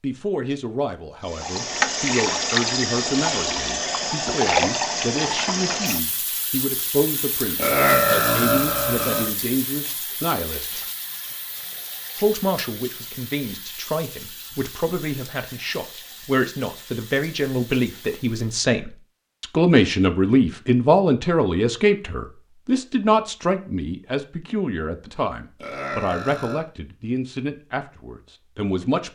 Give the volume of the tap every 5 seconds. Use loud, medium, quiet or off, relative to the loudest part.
loud, medium, quiet, quiet, off, off.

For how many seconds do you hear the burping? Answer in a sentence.
You can hear the burping for 3 seconds altogether.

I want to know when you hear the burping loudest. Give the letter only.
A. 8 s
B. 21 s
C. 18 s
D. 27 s
A.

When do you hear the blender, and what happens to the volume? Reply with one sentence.
You can't hear the blender here.